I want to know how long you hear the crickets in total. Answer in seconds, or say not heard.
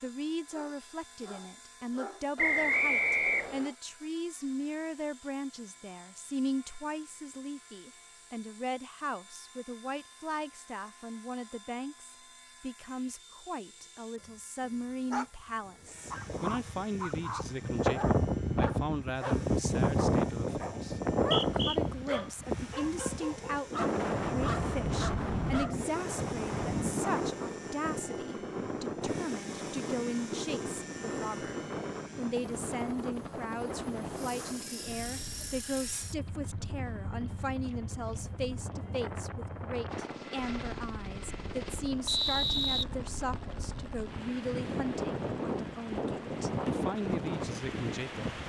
not heard.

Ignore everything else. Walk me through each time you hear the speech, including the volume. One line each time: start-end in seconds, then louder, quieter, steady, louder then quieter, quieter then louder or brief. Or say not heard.
0.0-48.4 steady.